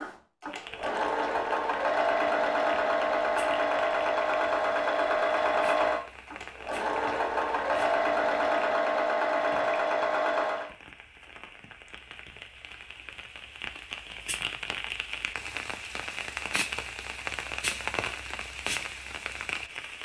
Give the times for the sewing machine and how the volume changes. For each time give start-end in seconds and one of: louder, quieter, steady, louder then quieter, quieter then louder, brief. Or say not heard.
0.0-10.7 steady.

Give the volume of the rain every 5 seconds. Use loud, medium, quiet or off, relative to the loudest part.
medium, medium, medium, loud.